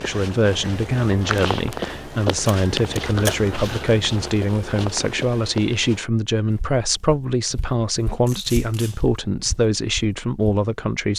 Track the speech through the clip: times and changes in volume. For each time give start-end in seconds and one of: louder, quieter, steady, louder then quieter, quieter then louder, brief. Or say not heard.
0.0-11.1 steady.